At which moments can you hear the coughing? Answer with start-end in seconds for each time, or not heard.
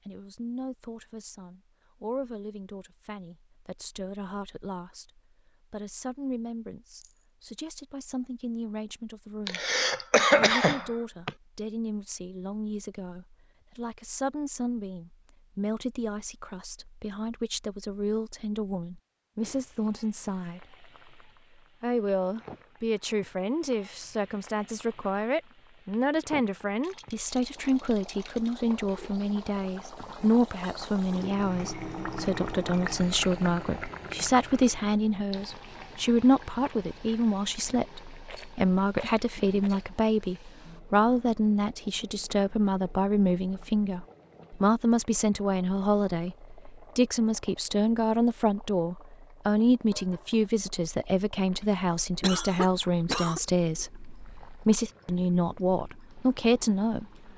9.4-11.3, 52.2-53.4.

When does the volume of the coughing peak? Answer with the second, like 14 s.
10 s.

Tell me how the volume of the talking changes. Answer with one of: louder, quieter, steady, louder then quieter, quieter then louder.
louder.